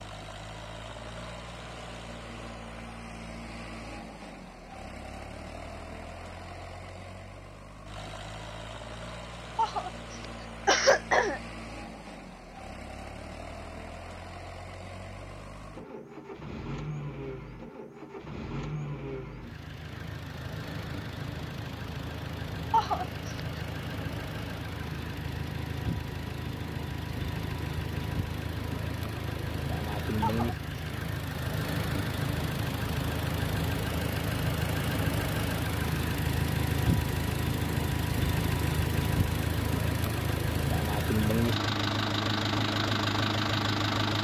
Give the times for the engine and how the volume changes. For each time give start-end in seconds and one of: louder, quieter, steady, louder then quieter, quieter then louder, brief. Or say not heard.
0.0-44.1 louder.